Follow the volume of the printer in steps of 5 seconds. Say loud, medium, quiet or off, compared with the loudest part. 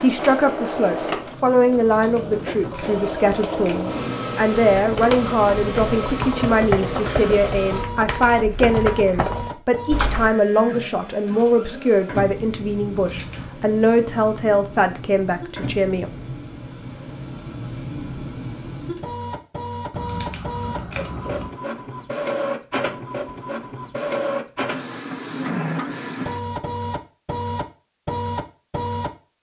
loud, loud, medium, medium, loud, loud.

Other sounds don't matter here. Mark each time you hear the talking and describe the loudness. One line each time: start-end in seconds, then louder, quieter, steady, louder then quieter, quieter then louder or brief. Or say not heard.
0.0-16.1 steady.